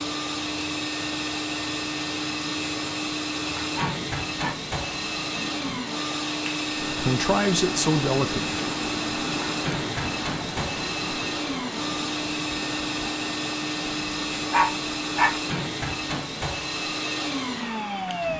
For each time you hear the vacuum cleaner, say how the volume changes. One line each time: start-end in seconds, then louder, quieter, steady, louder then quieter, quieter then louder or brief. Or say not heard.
0.0-18.3 steady.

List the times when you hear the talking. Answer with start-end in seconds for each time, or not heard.
6.8-8.6.